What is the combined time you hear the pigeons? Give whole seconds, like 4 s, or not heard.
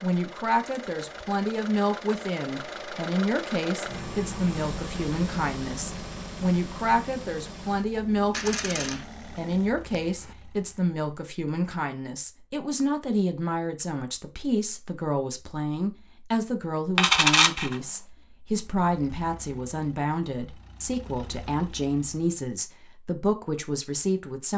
not heard.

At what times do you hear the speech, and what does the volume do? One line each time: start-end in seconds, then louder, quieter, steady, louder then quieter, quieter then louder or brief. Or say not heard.
0.0-24.5 steady.